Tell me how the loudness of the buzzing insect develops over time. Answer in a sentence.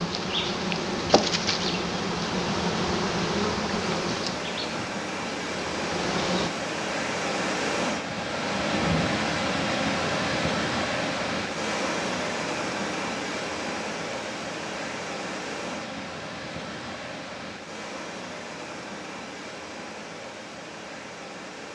The volume of the buzzing insect goes down.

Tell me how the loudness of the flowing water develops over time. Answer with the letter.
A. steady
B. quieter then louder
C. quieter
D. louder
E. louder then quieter
E.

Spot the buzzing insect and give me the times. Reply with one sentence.
You can hear the buzzing insect from 0.0 to 6.5 s.